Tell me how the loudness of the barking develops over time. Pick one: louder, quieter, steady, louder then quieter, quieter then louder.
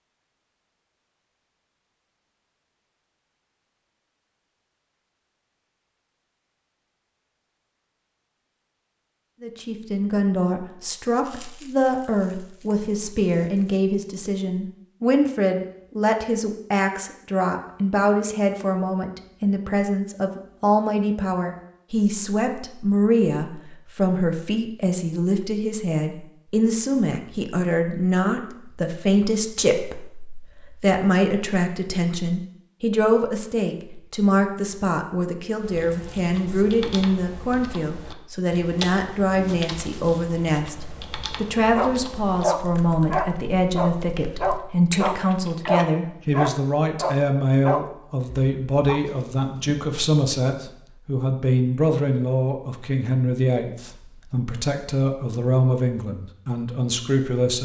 quieter.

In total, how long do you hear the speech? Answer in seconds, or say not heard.
48 s.